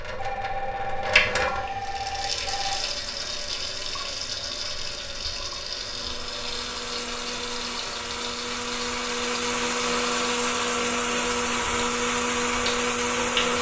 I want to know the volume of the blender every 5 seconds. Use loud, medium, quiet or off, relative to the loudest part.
off, medium, loud.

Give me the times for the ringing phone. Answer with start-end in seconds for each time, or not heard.
0.1-2.9.